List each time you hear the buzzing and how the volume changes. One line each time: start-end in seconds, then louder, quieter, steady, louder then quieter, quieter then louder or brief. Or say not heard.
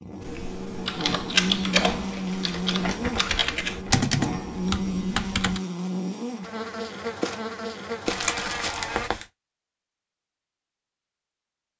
0.0-9.1 steady.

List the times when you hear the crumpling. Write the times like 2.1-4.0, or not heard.
2.1-4.0, 8.1-9.2.